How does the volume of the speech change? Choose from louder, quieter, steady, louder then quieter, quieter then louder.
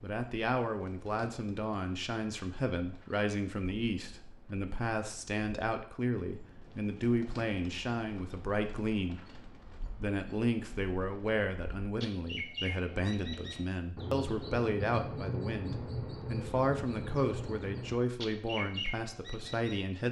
steady.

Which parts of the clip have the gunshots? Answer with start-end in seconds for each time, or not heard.
not heard.